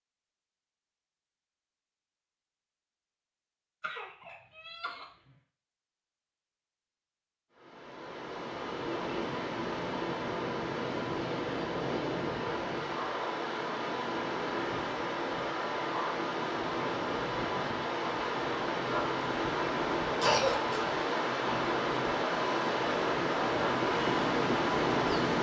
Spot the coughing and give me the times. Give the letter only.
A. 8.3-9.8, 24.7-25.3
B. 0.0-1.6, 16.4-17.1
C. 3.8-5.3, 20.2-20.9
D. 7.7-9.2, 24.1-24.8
C.